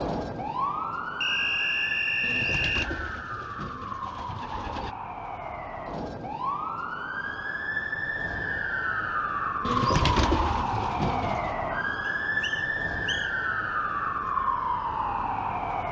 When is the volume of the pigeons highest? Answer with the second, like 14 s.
10 s.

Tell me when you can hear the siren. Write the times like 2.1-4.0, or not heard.
0.0-15.8.